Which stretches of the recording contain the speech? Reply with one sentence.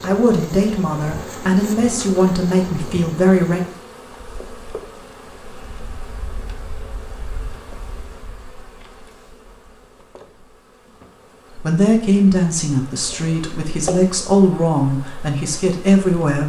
The speech can be heard from 0.0 to 3.6 s and from 11.6 to 16.4 s.